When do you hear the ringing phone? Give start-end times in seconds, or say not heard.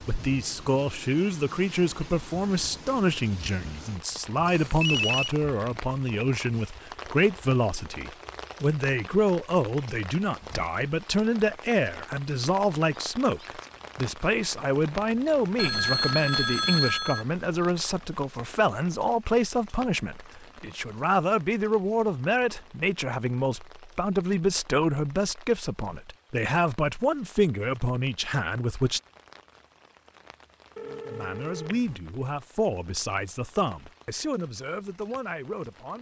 4.5-5.3, 15.6-17.2, 30.8-31.9.